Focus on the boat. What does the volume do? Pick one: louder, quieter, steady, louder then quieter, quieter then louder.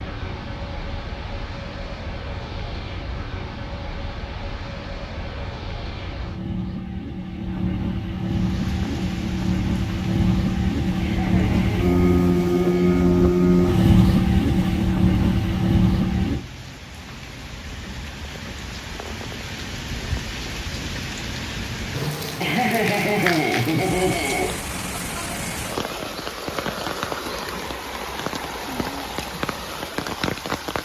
louder.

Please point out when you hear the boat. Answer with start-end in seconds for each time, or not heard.
0.0-16.4.